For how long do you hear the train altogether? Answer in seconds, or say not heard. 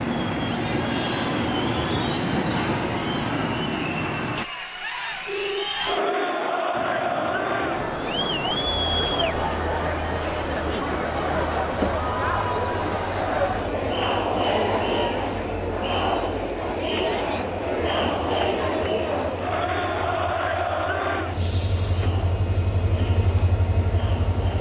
22 s.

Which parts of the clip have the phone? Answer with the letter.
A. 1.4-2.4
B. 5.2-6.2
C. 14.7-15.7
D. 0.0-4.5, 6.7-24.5
B.